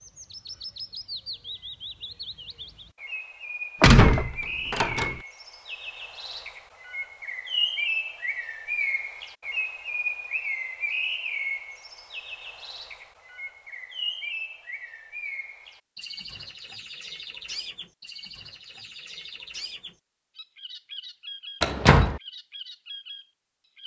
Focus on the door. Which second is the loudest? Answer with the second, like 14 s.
4 s.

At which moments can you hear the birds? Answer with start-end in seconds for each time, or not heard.
0.0-23.8.